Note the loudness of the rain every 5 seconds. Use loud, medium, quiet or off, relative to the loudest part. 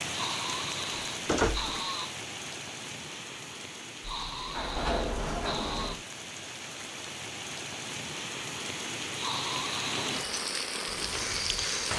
medium, medium, loud.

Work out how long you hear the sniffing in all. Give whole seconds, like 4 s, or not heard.
5 s.